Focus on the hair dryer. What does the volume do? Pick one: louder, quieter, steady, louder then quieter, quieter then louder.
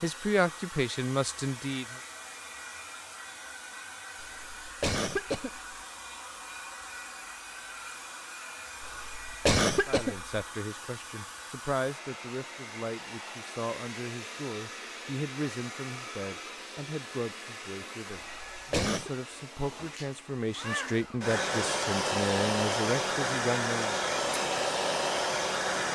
louder.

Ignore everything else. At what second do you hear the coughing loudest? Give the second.
10 s.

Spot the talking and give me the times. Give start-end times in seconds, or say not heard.
0.0-1.9, 9.8-23.9.